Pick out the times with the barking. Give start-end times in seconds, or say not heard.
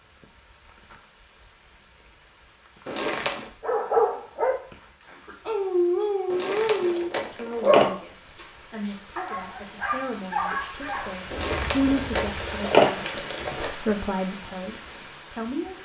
3.6-12.6.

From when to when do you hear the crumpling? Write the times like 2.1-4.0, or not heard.
2.9-3.5, 6.3-7.9, 11.3-13.7.